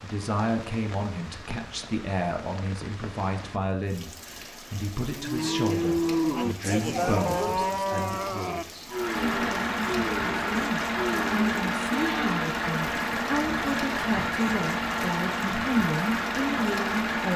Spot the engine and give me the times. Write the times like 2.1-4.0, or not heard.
8.9-17.3.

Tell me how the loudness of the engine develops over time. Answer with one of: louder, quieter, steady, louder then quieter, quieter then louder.
steady.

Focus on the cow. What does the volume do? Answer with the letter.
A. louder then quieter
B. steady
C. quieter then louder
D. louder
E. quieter
E.